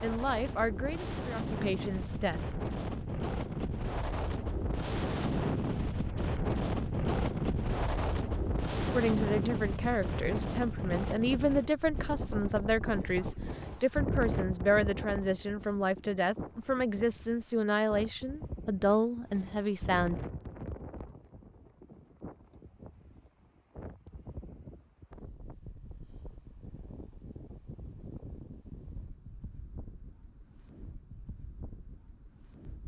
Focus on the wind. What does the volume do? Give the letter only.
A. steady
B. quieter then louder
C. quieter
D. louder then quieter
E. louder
C.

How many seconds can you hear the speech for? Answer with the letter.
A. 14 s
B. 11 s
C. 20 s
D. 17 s
A.